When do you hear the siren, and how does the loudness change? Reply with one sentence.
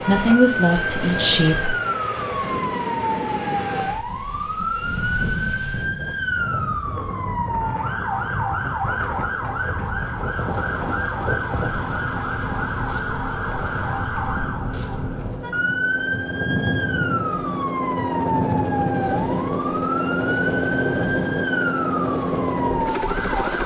The siren can be heard from 0.0 to 23.6 s, at a steady volume.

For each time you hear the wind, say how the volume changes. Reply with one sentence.
You can hear the wind from 0.0 to 23.5 s, at a steady volume.